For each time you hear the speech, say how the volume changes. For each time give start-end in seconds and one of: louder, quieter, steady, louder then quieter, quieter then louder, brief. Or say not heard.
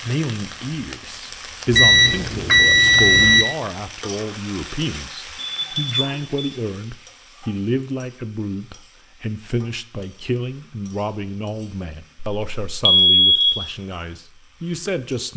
0.0-15.3 steady.